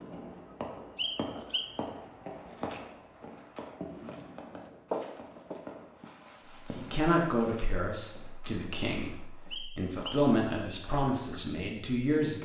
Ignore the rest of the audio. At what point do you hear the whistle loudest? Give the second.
1 s.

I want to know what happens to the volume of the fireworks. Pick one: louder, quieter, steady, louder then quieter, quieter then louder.
quieter.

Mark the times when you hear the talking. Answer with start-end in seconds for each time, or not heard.
6.7-12.4.